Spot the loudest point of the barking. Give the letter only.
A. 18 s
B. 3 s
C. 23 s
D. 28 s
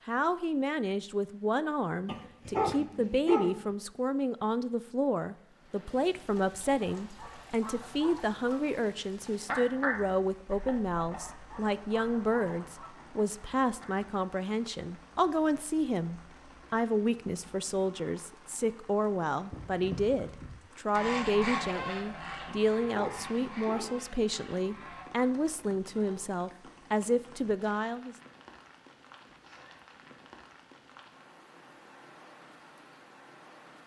B.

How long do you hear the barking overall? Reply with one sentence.
The barking can be heard for 3 seconds in total.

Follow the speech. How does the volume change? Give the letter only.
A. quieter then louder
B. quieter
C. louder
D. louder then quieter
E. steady
E.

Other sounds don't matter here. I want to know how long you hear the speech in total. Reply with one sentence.
You can hear the speech for 28 seconds altogether.